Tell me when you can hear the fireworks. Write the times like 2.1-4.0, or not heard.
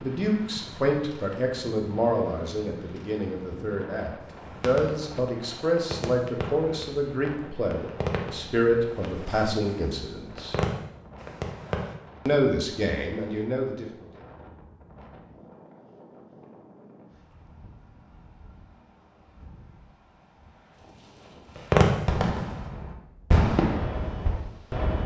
4.2-11.9, 21.6-25.0.